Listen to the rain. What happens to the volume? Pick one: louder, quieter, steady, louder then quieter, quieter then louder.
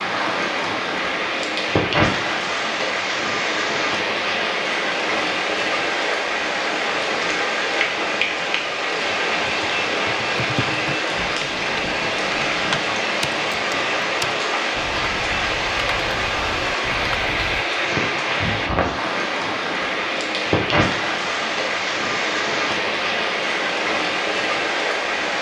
steady.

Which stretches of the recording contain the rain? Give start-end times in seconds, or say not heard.
0.0-25.3.